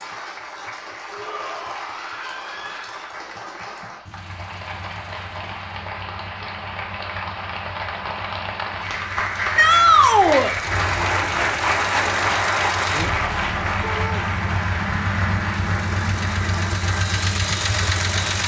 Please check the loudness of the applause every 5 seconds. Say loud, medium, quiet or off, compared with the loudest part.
quiet, medium, loud, medium.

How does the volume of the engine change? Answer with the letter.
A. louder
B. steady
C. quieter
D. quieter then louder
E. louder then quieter
A.